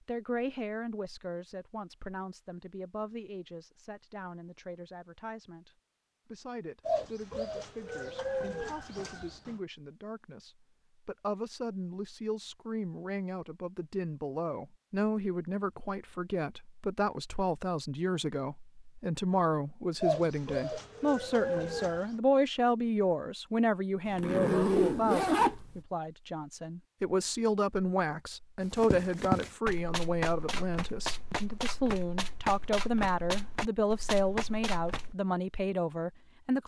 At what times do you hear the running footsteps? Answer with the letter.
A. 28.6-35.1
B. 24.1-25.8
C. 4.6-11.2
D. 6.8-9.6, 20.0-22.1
A.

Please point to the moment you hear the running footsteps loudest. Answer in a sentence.
The loudest moment of the running footsteps is at 29 seconds.